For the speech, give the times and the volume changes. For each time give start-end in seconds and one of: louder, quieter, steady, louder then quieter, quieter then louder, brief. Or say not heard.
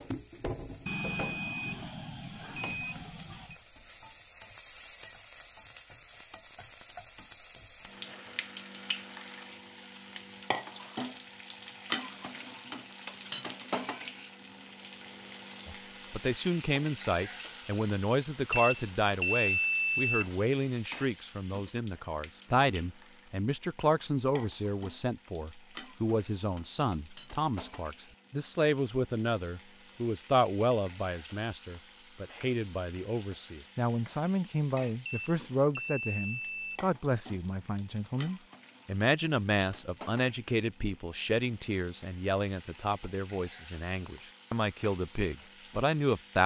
15.7-46.4 steady.